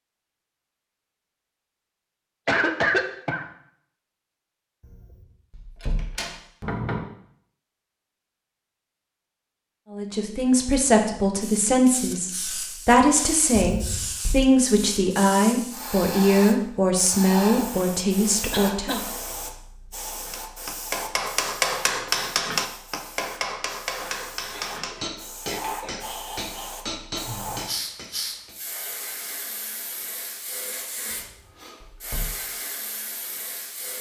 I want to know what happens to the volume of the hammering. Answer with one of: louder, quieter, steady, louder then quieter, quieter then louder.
quieter.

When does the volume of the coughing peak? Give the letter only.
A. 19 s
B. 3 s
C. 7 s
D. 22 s
B.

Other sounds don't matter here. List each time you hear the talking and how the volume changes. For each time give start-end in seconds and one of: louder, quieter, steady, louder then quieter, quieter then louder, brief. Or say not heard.
9.9-19.0 steady.